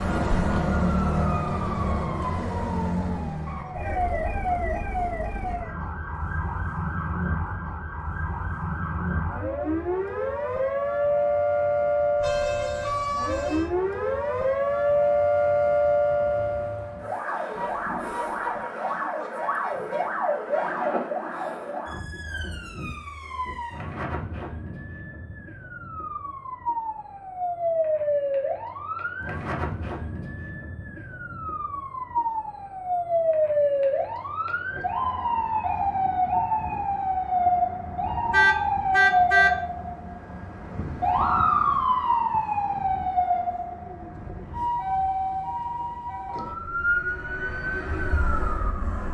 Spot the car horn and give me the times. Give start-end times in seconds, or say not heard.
12.2-13.7, 17.6-18.6, 38.3-39.5.